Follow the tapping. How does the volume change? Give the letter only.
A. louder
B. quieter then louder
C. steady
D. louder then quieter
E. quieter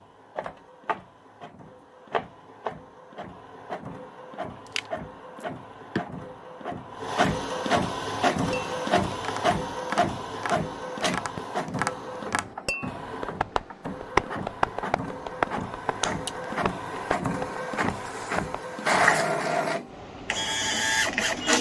D.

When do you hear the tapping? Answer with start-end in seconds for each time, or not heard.
8.5-18.6.